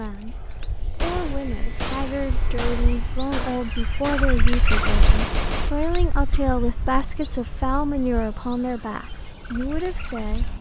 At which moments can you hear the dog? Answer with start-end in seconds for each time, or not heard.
not heard.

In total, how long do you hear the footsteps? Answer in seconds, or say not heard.
not heard.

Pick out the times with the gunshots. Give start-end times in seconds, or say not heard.
1.0-5.7.